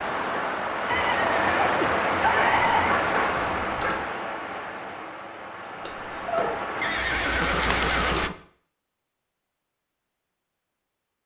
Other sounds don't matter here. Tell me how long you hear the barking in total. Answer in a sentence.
The barking can be heard for 3 seconds in total.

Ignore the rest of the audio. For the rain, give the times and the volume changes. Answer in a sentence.
The rain can be heard from 0.0 to 8.3 s, getting quieter then louder.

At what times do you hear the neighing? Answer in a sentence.
The neighing can be heard from 0.9 to 3.0 s and from 6.8 to 8.3 s.